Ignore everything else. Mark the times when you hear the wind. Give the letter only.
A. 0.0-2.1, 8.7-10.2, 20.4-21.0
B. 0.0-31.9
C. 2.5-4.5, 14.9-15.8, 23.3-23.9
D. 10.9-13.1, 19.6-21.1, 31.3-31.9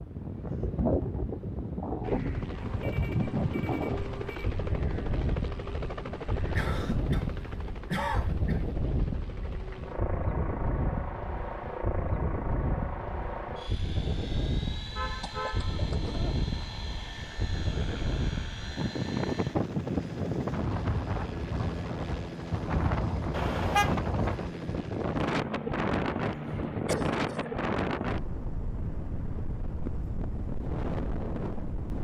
B.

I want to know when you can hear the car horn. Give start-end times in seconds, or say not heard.
2.5-4.5, 14.9-15.8, 23.3-23.9.